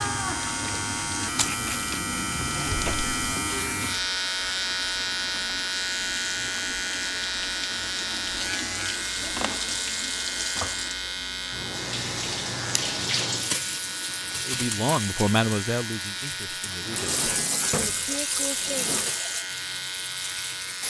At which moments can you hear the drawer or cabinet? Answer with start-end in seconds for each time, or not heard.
2.6-3.1, 16.7-19.2.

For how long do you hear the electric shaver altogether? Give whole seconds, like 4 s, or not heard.
21 s.